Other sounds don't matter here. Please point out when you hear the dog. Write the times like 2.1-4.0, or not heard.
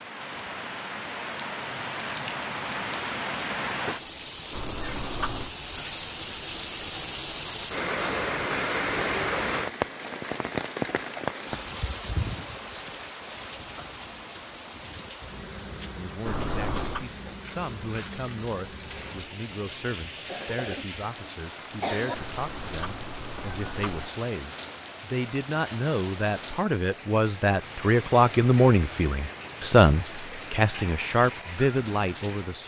not heard.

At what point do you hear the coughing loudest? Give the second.
22 s.